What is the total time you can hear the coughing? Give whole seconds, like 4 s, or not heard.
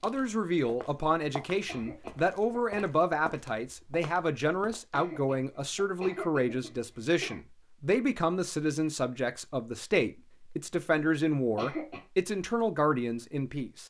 5 s.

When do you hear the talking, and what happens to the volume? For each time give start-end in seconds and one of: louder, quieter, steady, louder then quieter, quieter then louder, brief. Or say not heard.
0.0-13.8 steady.